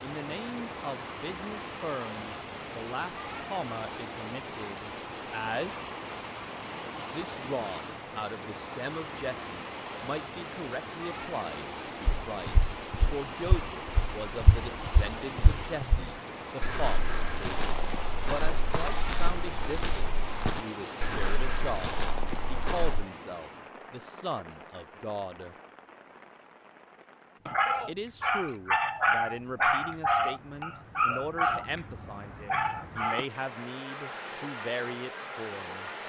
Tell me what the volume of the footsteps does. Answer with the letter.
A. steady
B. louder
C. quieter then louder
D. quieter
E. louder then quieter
A.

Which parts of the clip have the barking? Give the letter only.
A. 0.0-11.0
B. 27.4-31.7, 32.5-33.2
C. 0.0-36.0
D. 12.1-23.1
B.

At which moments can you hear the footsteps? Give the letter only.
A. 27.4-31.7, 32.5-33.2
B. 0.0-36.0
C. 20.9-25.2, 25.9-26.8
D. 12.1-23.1
D.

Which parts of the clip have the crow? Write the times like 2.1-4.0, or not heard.
not heard.